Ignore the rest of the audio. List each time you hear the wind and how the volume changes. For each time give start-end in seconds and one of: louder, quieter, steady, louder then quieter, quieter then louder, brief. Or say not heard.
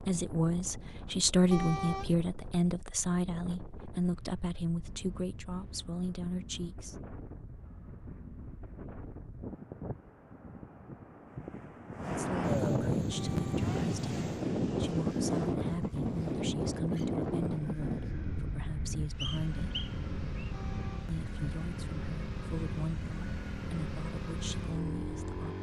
0.0-25.4 louder then quieter.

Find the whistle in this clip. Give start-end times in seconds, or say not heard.
19.1-20.5.